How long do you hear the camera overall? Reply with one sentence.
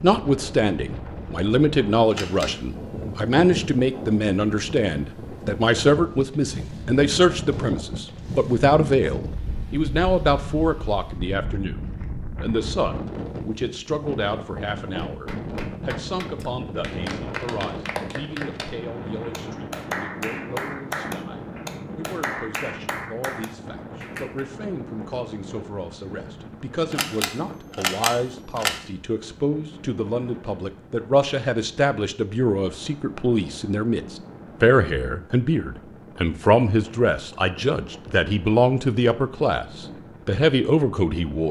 You can hear the camera for 2 seconds altogether.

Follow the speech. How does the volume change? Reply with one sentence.
The loudness of the speech goes down, then up.